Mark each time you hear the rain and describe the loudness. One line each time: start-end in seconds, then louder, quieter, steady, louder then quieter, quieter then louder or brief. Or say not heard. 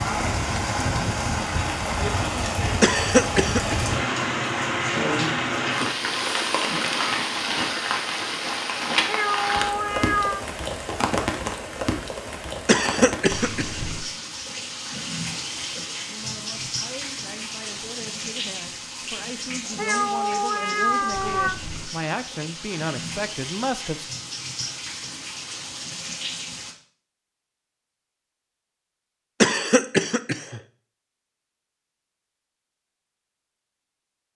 0.0-26.8 quieter.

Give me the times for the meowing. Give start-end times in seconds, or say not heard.
9.1-10.4, 19.8-21.6.